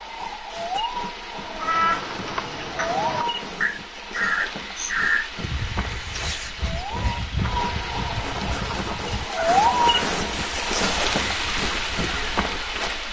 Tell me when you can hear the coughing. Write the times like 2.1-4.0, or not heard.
not heard.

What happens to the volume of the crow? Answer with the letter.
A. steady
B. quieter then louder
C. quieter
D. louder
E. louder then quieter
C.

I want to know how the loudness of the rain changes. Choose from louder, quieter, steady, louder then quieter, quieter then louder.
louder.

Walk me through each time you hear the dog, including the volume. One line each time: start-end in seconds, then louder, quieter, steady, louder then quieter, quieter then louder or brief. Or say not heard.
not heard.